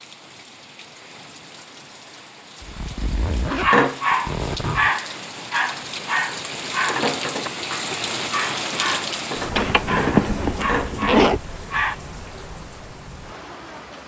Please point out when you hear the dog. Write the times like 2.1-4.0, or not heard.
3.6-11.9.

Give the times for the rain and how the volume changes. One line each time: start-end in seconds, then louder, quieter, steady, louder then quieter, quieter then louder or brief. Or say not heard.
0.0-14.0 louder then quieter.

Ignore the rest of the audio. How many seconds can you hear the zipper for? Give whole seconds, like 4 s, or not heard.
4 s.